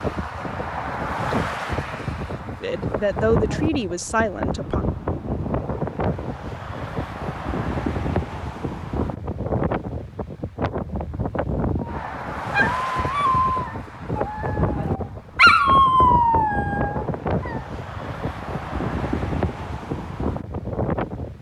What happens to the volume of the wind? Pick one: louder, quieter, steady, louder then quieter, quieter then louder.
steady.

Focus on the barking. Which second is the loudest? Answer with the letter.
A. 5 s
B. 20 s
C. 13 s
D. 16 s
D.